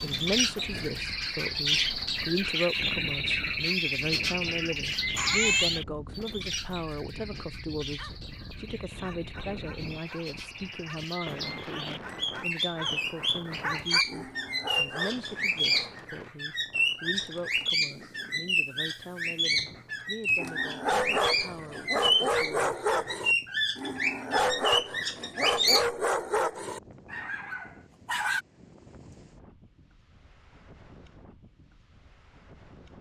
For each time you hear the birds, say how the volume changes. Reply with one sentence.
The birds can be heard from 0.0 to 25.9 s, getting quieter then louder.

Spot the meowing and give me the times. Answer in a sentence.
You can hear the meowing from 5.2 to 5.8 s.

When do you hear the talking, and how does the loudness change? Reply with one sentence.
You can hear the talking from 0.0 to 22.9 s, getting quieter.